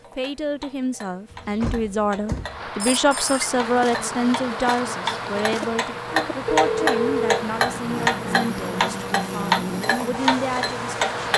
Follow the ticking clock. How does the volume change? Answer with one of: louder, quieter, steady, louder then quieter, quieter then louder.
louder.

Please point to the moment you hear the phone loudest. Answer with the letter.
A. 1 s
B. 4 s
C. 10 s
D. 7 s
D.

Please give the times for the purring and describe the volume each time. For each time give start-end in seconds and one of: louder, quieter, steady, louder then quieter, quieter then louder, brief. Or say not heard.
not heard.